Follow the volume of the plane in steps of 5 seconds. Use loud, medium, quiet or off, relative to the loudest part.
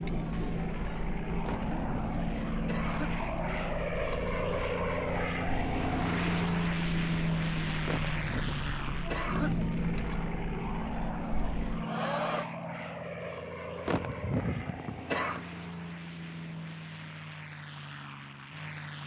loud, loud, medium, medium.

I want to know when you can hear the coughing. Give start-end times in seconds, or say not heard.
1.4-3.2, 7.8-9.7, 13.8-15.4.